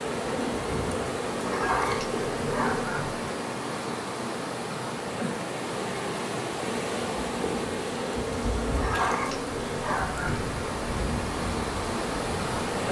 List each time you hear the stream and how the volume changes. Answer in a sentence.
The stream can be heard from 0.0 to 12.8 s, at a steady volume.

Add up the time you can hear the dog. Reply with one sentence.
The dog can be heard for 4 seconds in total.